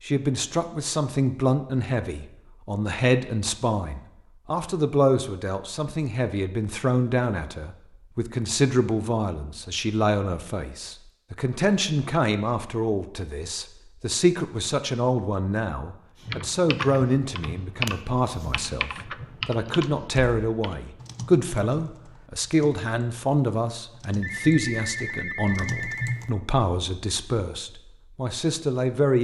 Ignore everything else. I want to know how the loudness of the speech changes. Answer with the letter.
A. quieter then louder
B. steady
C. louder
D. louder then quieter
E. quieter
B.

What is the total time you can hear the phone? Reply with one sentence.
You can hear the phone for 2 seconds altogether.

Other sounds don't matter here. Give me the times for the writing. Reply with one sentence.
You can't hear the writing here.